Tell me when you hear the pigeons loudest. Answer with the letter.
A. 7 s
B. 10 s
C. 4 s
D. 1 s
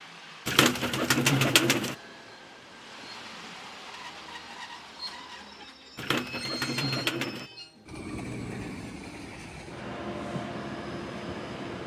D.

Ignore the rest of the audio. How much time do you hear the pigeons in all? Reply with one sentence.
The pigeons can be heard for 3 seconds in total.